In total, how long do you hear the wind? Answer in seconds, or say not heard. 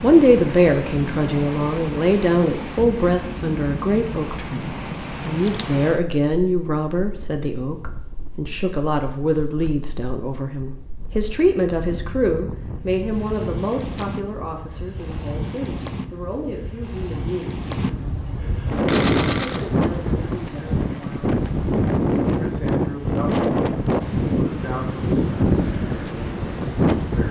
27 s.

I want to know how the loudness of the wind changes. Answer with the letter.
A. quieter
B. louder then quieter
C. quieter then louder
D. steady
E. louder
C.